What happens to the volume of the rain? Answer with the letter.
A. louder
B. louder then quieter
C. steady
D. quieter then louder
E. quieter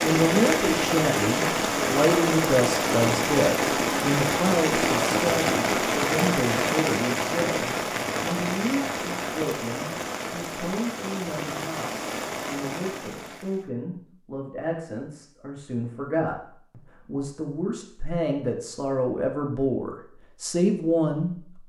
E.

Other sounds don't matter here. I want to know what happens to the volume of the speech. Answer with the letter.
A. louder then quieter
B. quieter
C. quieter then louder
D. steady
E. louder
C.